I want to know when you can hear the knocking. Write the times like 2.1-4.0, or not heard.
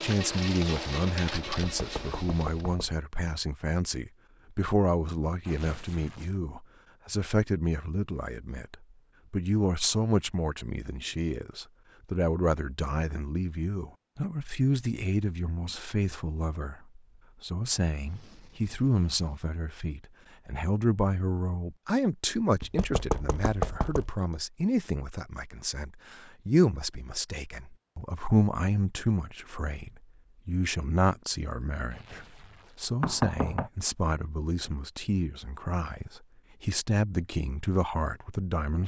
1.4-3.0, 22.6-24.1, 33.0-33.7.